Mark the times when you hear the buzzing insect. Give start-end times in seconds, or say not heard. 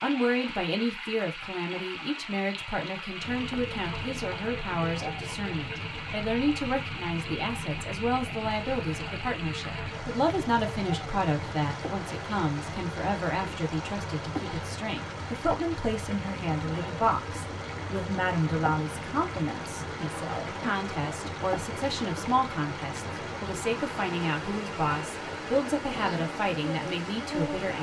3.2-27.7.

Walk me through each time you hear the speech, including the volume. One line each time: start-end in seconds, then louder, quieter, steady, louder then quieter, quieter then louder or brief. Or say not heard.
0.0-27.7 steady.